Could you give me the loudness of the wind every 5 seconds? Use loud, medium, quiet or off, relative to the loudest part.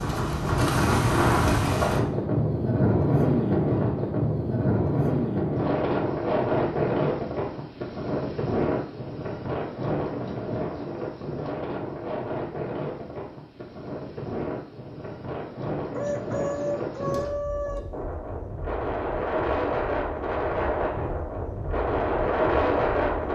loud, loud, medium, medium, loud.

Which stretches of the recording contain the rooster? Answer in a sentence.
The rooster can be heard from 15.9 to 17.8 s.